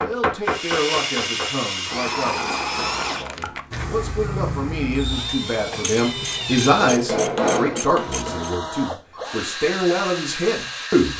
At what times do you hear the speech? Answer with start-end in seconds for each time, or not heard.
0.0-11.1.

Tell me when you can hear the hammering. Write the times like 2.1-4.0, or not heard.
0.0-2.0, 6.3-8.6.